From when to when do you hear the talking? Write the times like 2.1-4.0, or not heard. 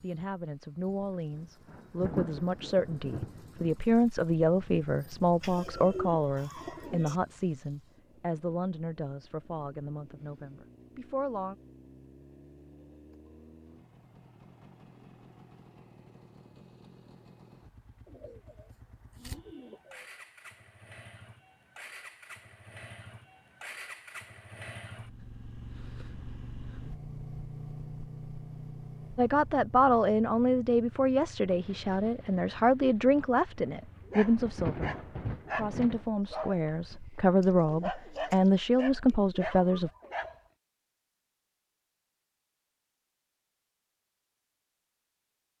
0.0-11.6, 29.1-39.9.